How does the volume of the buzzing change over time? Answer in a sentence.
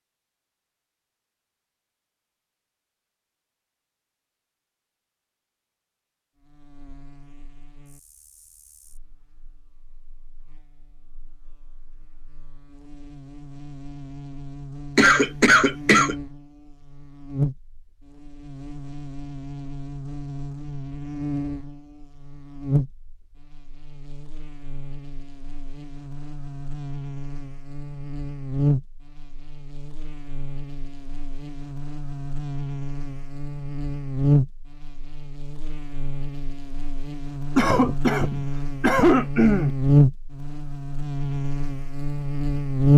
The loudness of the buzzing goes up.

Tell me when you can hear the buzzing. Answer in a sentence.
You can hear the buzzing from 6.4 to 42.9 s.